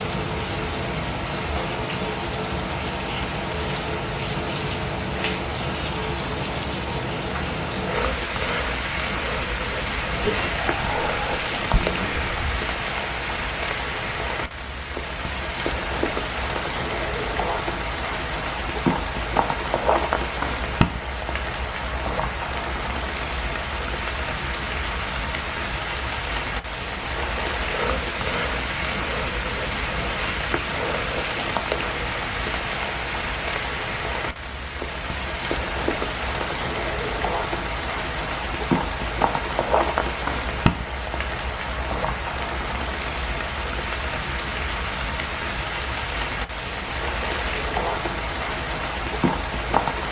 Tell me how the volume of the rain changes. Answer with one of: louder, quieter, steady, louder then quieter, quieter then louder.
steady.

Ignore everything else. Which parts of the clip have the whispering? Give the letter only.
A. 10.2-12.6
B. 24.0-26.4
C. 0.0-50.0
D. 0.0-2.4
A.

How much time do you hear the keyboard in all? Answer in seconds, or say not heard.
not heard.